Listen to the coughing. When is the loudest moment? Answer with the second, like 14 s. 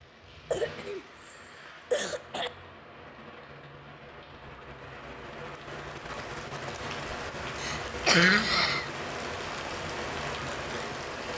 8 s.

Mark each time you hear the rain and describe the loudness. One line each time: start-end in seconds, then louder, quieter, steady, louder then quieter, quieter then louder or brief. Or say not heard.
0.0-11.3 louder.